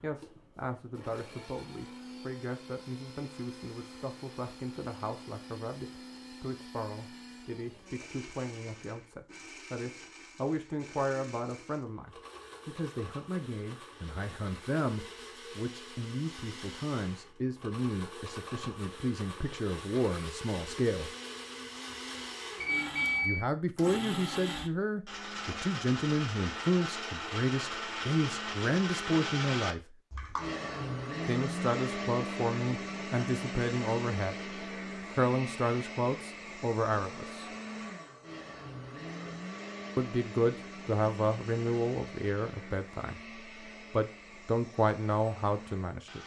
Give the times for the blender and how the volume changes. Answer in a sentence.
You can hear the blender from 0.0 to 46.2 s, getting louder then quieter.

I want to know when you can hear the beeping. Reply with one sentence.
The beeping can be heard from 22.6 to 23.4 s.